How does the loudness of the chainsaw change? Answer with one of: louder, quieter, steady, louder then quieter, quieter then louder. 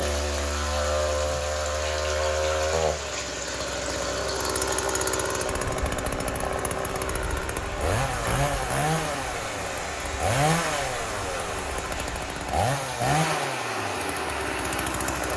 steady.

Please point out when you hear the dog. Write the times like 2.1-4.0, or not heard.
not heard.